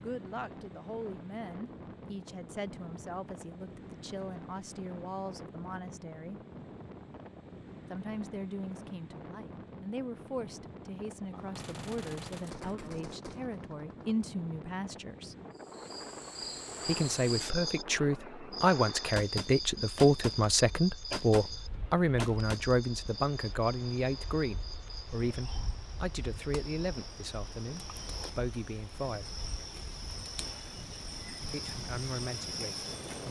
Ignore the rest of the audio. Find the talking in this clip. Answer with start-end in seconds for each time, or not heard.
0.0-6.4, 7.9-15.3, 16.9-29.4, 31.5-33.2.